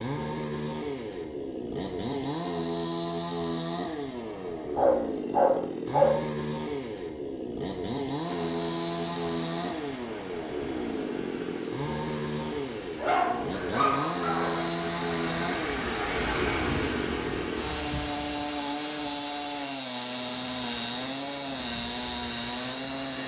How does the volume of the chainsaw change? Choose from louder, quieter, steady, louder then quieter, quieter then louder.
steady.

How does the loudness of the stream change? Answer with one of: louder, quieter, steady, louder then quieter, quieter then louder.
louder then quieter.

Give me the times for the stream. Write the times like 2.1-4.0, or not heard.
8.2-23.2.